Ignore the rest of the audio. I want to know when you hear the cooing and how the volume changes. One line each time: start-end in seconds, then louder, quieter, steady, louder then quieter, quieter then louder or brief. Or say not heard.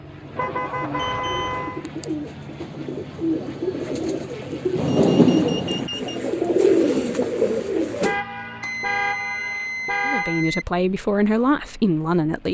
0.1-8.2 louder.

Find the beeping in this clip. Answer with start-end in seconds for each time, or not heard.
0.9-1.5, 4.9-6.2, 8.6-10.7.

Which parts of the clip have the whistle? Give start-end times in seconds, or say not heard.
not heard.